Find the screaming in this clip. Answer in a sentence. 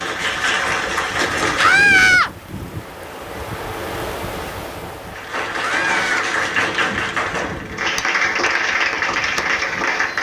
You can hear the screaming from 1.6 to 2.3 s and from 5.5 to 6.2 s.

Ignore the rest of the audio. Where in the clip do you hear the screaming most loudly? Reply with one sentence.
The loudest moment of the screaming is at 2 seconds.